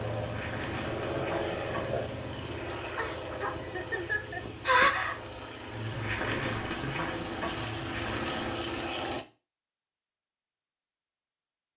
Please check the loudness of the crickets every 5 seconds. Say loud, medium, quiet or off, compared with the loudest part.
loud, loud, off.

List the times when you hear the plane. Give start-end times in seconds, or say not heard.
0.0-9.2.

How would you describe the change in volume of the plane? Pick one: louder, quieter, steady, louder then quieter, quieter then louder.
quieter then louder.